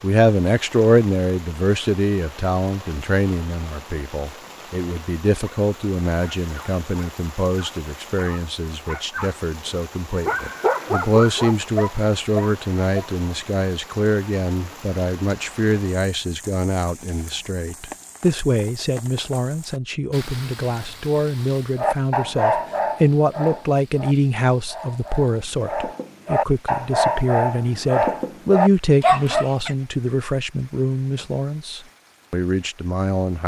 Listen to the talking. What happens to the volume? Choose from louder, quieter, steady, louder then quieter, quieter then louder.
steady.